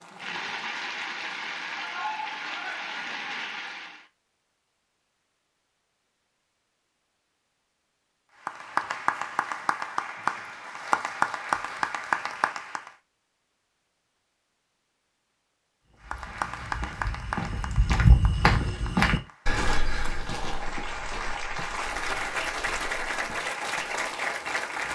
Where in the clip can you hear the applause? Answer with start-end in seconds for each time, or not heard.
0.0-4.0, 8.4-12.9, 16.1-24.9.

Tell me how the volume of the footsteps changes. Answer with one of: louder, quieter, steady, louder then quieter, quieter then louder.
louder then quieter.